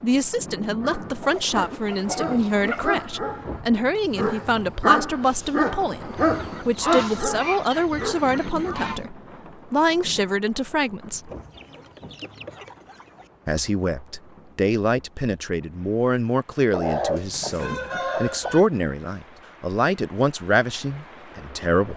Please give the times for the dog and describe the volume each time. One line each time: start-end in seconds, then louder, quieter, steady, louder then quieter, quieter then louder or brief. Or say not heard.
0.8-8.8 louder then quieter.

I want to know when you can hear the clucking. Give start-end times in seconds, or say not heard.
1.2-3.0, 6.2-9.1, 11.3-13.3, 16.7-18.6.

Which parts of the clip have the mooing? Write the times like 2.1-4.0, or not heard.
not heard.